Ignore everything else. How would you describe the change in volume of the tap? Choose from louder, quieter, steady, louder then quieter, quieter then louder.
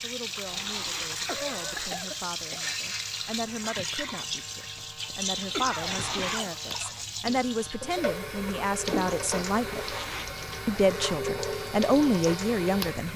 steady.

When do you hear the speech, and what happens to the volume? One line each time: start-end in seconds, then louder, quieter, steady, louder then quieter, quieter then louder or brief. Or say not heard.
0.0-9.9 louder
10.7-13.1 brief.